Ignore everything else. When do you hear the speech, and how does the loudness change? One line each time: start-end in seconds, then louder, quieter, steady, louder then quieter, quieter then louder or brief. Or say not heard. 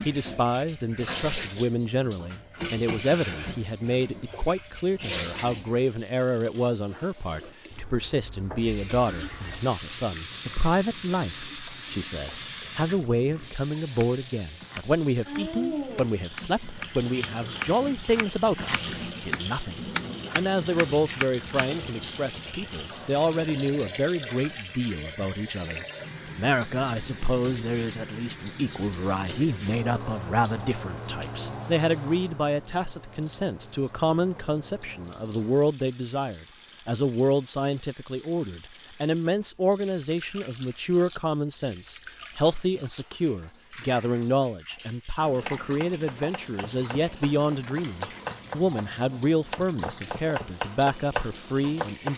0.1-52.1 steady.